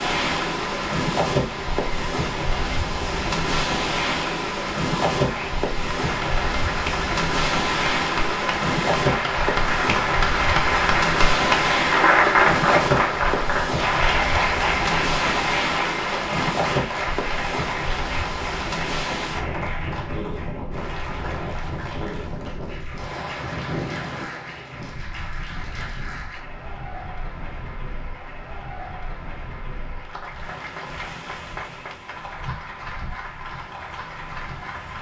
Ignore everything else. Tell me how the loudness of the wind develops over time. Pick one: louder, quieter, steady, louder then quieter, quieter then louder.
quieter.